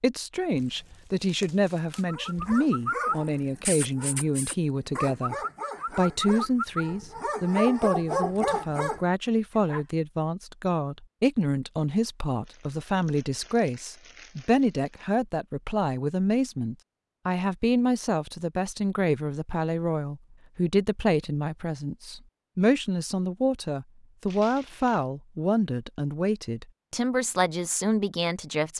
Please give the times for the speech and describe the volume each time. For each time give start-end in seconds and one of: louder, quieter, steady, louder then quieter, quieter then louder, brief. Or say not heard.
0.0-5.3 steady
6.0-28.7 steady.